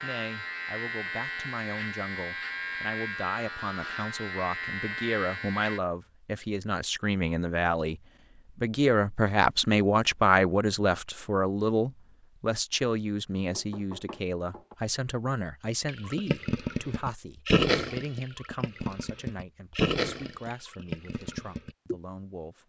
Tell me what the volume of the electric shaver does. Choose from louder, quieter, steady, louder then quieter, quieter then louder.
steady.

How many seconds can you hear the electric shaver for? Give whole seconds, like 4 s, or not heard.
6 s.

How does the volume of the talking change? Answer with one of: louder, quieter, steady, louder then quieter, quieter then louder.
louder then quieter.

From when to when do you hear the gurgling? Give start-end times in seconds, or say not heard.
15.8-22.0.